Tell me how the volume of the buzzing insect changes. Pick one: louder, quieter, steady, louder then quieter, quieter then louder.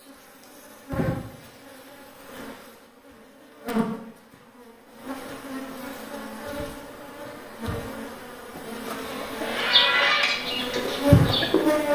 louder.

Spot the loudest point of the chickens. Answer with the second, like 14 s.
10 s.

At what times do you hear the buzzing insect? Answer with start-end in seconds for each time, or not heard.
0.0-11.9.